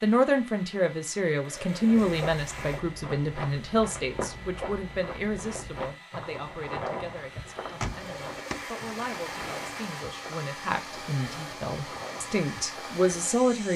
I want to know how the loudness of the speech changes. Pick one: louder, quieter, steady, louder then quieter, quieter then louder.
quieter then louder.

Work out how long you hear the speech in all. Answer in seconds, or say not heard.
14 s.